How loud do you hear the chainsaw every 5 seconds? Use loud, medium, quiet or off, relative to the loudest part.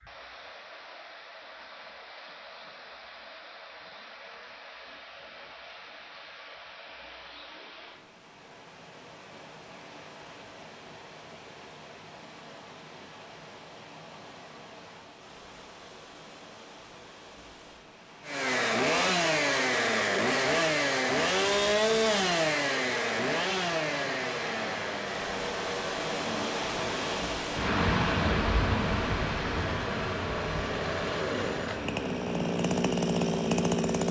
off, off, off, loud, loud, medium, loud.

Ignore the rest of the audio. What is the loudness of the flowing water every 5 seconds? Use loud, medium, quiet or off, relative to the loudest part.
quiet, quiet, quiet, quiet, medium, loud, medium.